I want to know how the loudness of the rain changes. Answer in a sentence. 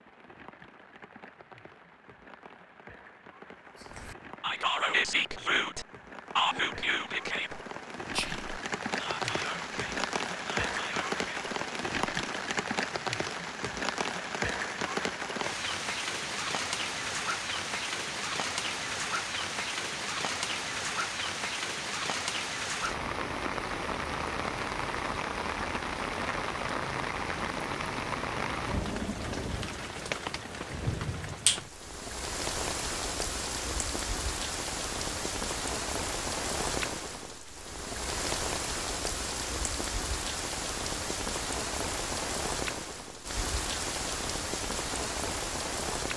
The loudness of the rain goes up.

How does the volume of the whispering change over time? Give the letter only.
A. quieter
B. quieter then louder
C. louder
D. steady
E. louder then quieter
A.